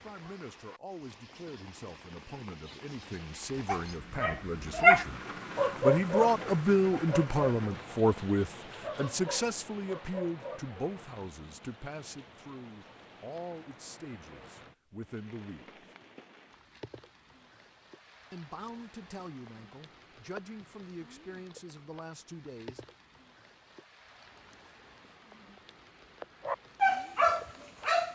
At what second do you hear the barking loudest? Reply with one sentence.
The loudest moment of the barking is at 5 seconds.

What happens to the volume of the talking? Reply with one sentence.
The loudness of the talking goes up, then down.